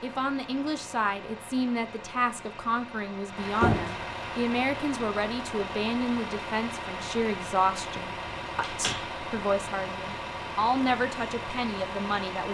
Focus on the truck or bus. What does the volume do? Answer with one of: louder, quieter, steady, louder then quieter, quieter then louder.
louder.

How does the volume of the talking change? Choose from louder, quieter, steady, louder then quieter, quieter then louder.
steady.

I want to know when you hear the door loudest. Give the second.
4 s.